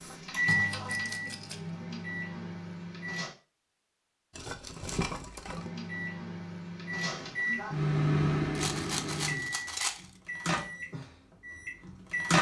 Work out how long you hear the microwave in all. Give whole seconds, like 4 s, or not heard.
10 s.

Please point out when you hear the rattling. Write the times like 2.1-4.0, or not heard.
0.7-1.6, 4.3-5.7, 8.6-10.1.